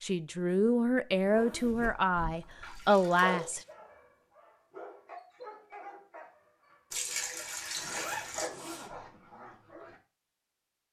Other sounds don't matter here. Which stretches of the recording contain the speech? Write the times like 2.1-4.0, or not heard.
0.0-3.6.